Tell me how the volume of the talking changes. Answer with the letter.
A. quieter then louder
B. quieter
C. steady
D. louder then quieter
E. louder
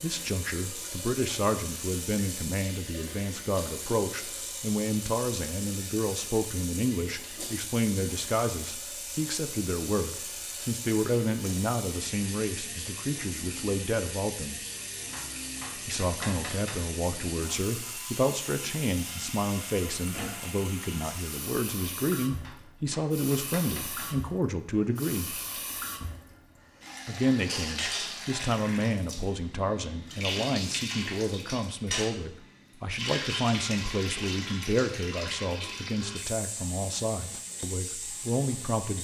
C.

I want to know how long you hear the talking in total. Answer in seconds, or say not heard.
36 s.